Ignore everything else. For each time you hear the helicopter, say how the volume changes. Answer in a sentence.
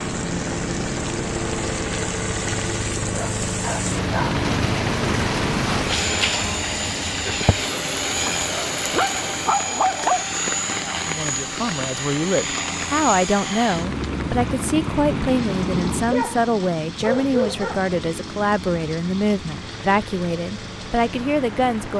You can hear the helicopter from 0.0 to 21.9 s, getting quieter.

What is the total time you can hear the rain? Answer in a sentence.
You can hear the rain for 22 seconds altogether.